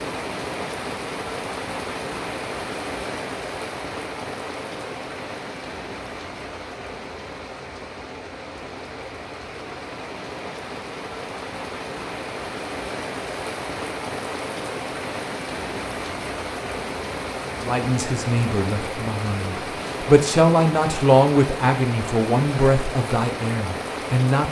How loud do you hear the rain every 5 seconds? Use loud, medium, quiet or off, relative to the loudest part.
loud, medium, loud, loud, loud.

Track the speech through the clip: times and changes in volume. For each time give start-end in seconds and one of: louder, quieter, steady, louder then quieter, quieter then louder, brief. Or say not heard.
17.6-24.4 louder then quieter.